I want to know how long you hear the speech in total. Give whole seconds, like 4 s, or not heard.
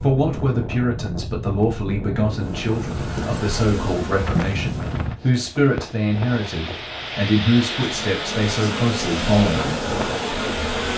10 s.